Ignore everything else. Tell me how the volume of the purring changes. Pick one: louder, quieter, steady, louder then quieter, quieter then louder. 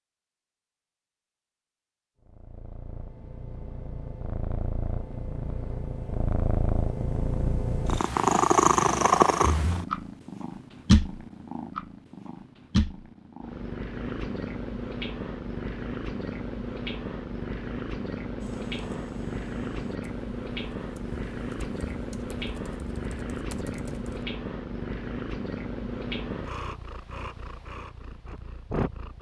louder then quieter.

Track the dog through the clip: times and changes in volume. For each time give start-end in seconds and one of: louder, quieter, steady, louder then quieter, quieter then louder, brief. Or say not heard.
not heard.